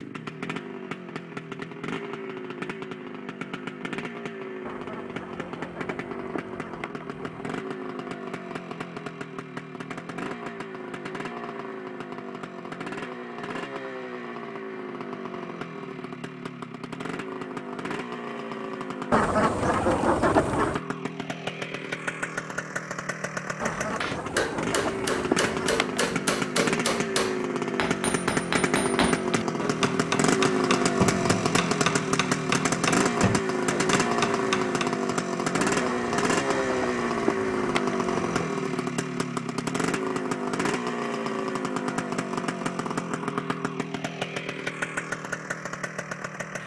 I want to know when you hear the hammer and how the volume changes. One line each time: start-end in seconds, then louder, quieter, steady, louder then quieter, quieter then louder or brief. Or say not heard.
24.0-35.0 steady.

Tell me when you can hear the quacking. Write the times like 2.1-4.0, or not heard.
4.7-7.6, 19.1-20.8, 23.6-26.2, 35.6-38.5.